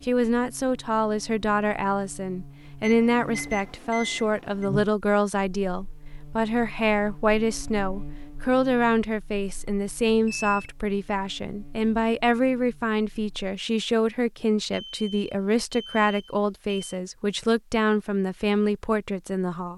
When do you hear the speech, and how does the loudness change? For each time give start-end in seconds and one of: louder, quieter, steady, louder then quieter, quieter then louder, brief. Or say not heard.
0.0-19.7 steady.